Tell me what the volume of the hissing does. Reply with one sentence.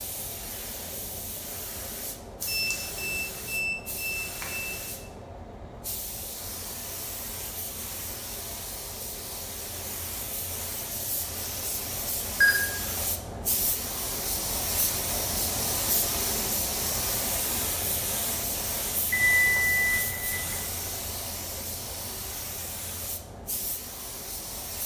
The loudness of the hissing goes up, then down.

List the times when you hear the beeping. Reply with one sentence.
You can hear the beeping from 2.4 to 4.8 s, from 12.4 to 13.0 s and from 19.1 to 20.6 s.